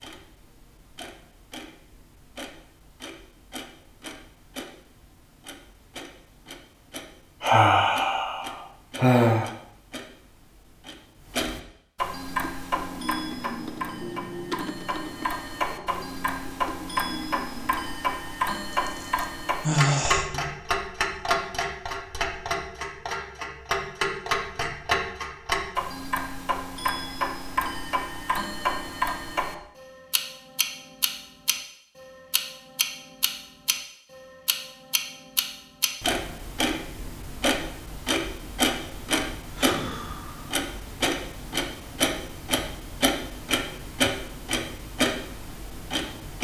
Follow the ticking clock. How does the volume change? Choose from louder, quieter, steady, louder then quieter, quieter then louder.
louder.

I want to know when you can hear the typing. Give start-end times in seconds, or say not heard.
12.2-17.9.